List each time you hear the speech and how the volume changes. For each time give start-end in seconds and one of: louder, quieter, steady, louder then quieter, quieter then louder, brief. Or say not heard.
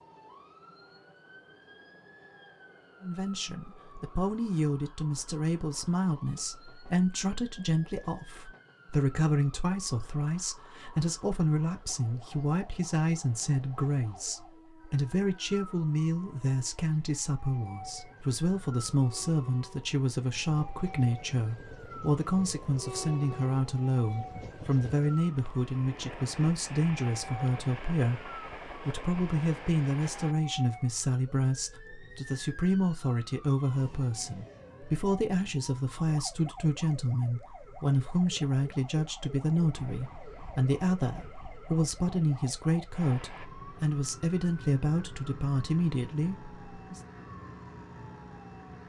3.0-47.0 steady.